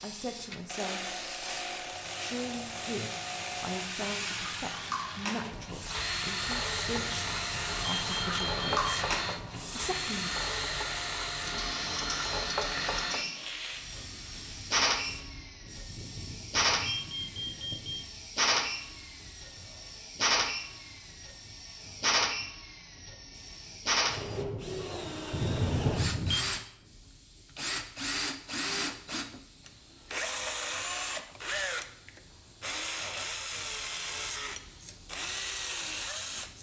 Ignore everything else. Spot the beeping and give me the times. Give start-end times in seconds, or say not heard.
6.9-9.0, 15.8-18.0, 25.3-26.4.